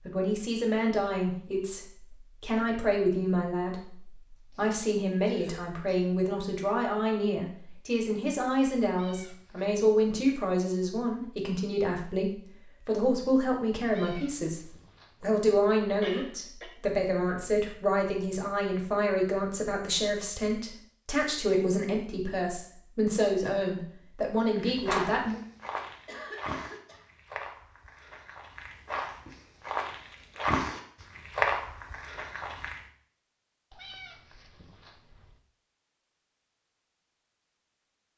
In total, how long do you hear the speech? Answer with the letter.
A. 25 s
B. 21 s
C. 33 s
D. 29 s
A.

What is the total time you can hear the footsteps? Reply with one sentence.
The footsteps can be heard for 8 seconds in total.